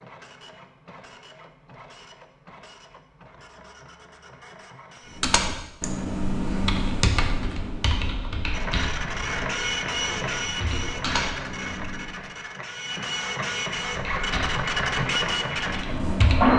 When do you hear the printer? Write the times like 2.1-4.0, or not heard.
0.0-5.2, 8.4-16.5.